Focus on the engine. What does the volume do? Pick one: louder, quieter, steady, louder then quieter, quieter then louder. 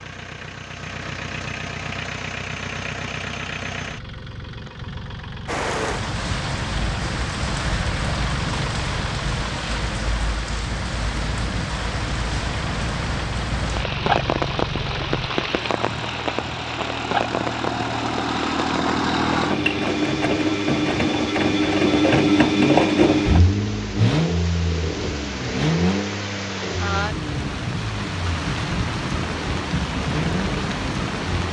louder then quieter.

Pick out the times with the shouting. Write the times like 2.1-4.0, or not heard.
not heard.